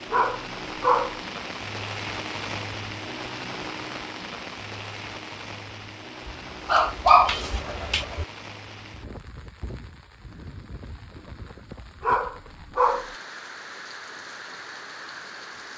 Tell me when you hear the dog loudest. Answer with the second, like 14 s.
7 s.